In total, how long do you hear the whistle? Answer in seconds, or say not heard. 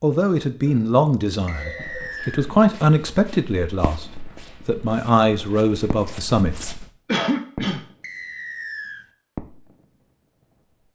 2 s.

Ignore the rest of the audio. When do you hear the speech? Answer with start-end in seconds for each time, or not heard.
0.0-6.7.